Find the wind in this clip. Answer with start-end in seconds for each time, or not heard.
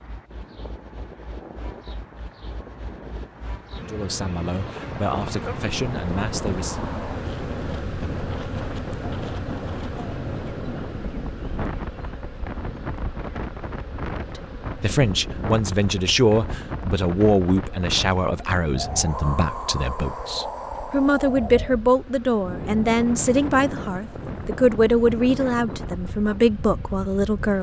0.0-27.5.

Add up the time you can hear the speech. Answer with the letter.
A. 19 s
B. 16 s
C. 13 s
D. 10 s
B.